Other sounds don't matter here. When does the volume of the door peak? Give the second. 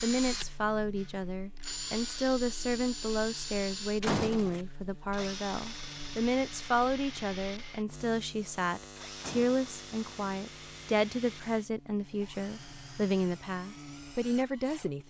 4 s.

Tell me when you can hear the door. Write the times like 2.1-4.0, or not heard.
4.0-4.7, 9.2-9.7.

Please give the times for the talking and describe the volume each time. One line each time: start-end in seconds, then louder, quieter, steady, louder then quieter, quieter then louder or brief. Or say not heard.
0.0-15.0 steady.